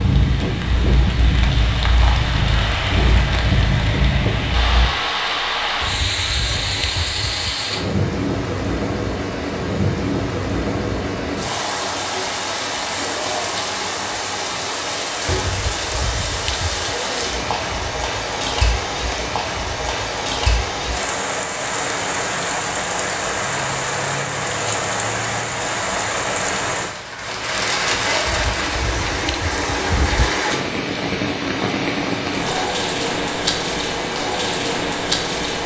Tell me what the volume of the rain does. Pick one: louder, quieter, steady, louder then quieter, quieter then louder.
steady.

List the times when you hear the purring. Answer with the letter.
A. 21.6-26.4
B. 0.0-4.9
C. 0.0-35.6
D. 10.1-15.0
B.